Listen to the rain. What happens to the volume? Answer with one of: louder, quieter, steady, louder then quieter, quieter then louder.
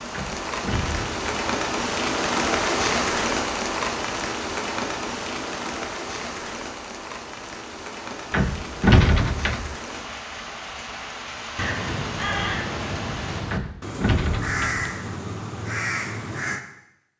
quieter.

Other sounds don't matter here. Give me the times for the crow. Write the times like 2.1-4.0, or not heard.
11.6-16.6.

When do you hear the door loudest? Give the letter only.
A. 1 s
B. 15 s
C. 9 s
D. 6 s
C.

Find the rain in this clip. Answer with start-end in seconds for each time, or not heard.
0.0-13.4.